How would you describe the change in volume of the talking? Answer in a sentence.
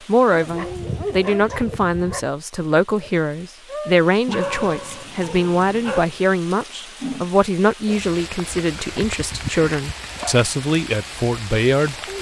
The volume of the talking stays about the same.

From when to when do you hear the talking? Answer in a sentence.
The talking can be heard from 0.1 to 11.9 s.